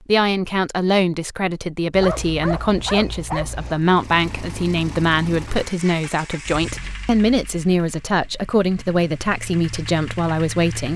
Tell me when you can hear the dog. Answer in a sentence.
The dog can be heard from 1.9 to 3.8 s.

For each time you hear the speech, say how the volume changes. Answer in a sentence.
You can hear the speech from 0.1 to 10.9 s, at a steady volume.